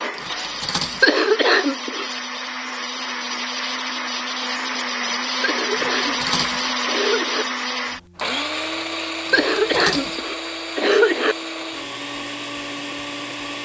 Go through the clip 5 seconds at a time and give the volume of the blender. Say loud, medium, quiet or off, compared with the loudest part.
loud, loud, medium.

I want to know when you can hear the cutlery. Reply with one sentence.
The cutlery can be heard from 0.1 to 1.1 s, from 5.7 to 6.7 s and from 9.2 to 10.2 s.